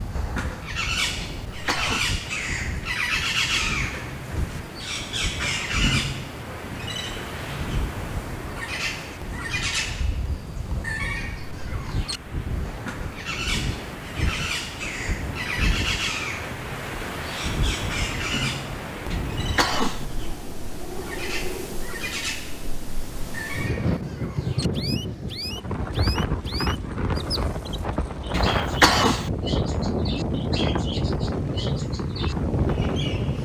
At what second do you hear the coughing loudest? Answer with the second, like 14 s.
29 s.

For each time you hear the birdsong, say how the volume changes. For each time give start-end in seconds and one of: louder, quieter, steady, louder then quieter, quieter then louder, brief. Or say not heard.
0.0-33.4 quieter.